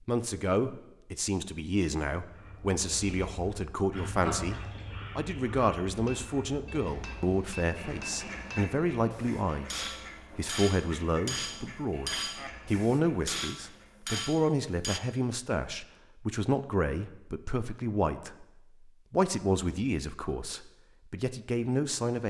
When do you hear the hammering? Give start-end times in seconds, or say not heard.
6.0-15.0.